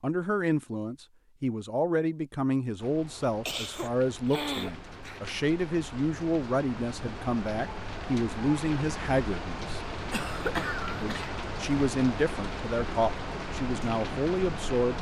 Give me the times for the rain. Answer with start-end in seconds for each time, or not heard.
2.8-14.9.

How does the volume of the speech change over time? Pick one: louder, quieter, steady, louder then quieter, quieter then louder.
steady.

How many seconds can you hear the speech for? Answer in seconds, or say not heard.
14 s.